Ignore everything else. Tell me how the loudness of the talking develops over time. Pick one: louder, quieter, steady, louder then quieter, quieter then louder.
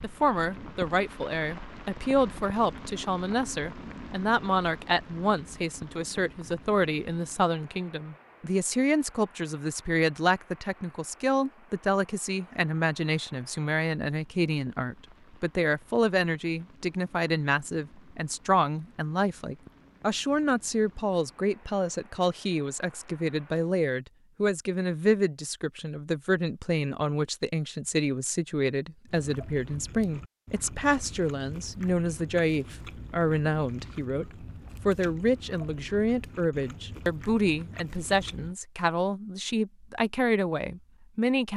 steady.